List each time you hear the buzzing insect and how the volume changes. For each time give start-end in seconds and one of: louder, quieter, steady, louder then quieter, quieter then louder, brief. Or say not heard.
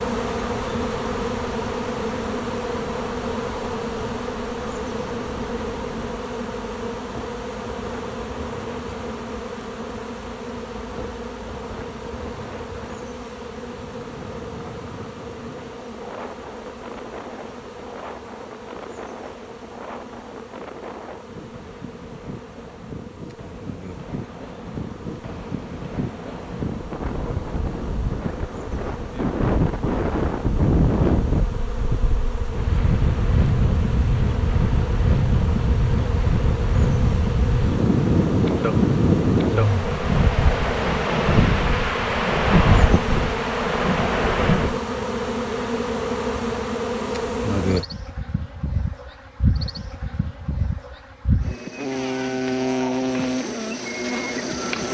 0.0-54.8 quieter then louder.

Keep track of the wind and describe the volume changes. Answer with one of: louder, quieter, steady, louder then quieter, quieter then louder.
louder.